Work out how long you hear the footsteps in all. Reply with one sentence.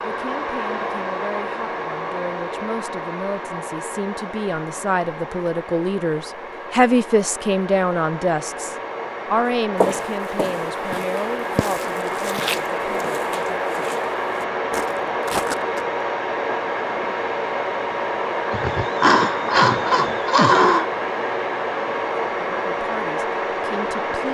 The footsteps can be heard for 6 seconds in total.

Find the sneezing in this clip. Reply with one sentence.
The sneezing can be heard from 18.5 to 20.9 s.